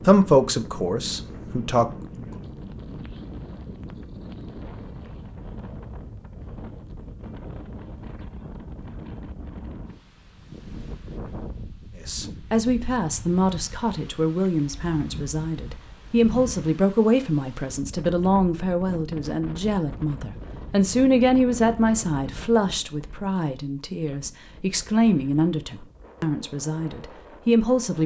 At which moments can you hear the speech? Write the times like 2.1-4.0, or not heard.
0.0-2.4, 12.1-28.0.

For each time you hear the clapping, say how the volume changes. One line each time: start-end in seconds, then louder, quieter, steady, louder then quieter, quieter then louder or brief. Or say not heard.
not heard.